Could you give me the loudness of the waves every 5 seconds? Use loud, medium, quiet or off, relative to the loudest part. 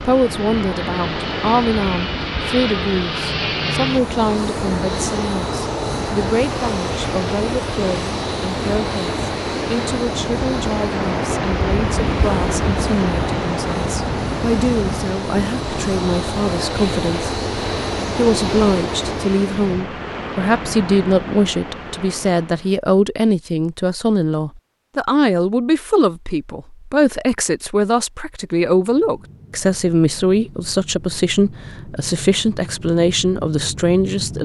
medium, medium, loud, medium, medium, off, off.